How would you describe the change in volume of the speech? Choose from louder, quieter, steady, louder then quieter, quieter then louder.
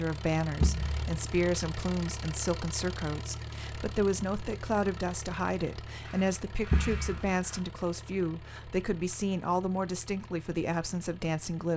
steady.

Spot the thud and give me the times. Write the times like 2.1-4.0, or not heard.
0.6-1.1, 6.7-7.3.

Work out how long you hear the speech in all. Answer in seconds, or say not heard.
12 s.